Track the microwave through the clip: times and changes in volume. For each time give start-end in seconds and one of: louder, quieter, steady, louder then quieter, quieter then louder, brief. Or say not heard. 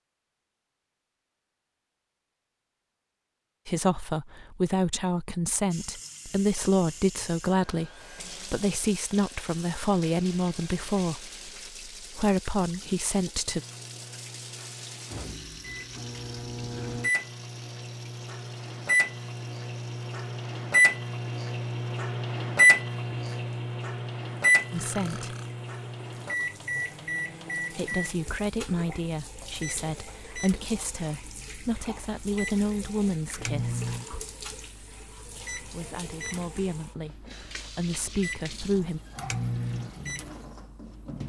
13.4-41.2 louder then quieter.